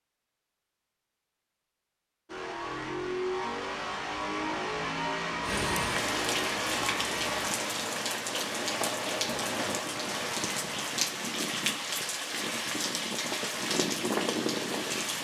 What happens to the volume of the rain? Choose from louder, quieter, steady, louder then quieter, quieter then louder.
steady.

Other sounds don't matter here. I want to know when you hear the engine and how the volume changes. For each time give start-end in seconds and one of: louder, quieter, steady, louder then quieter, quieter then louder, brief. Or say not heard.
2.2-7.5 steady.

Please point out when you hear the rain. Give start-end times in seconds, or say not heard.
5.4-15.1.